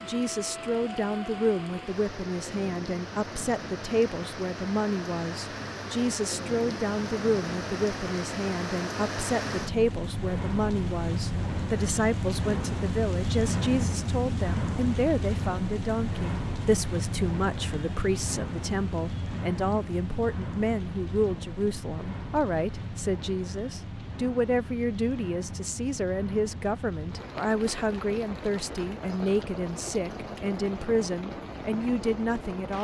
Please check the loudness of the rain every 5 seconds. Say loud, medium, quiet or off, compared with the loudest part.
medium, loud, loud, loud, medium, medium, medium.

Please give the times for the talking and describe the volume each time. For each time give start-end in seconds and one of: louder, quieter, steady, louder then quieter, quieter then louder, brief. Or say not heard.
0.0-32.7 steady.